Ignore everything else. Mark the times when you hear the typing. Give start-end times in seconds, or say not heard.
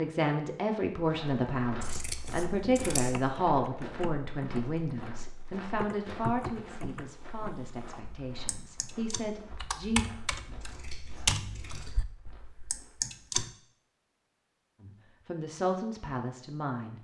1.8-13.5.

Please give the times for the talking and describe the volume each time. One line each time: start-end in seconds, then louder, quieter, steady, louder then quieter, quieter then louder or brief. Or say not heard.
0.0-10.1 quieter
14.8-16.9 brief.